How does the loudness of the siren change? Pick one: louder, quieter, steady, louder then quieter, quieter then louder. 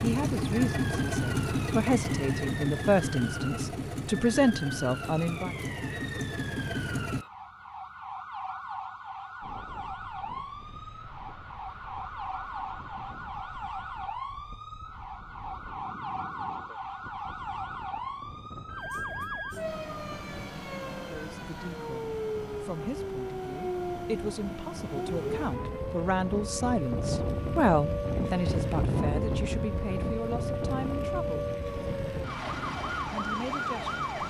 louder.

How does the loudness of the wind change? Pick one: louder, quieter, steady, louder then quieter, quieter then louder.
louder.